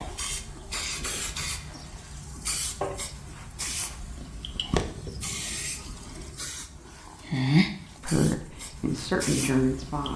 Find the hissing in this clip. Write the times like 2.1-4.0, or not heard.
0.0-10.1.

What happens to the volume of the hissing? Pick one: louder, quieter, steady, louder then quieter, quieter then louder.
louder then quieter.